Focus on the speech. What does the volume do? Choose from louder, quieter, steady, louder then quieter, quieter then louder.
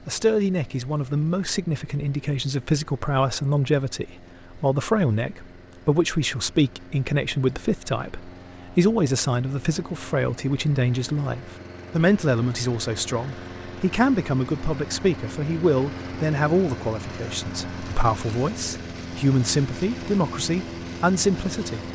steady.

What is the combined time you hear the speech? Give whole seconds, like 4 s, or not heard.
22 s.